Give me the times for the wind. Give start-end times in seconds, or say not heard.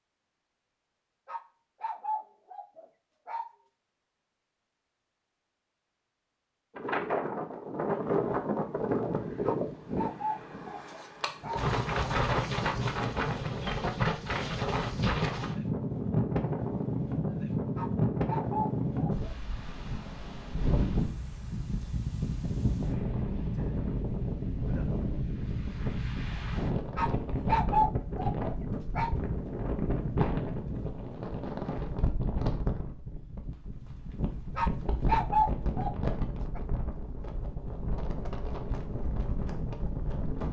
6.8-40.4.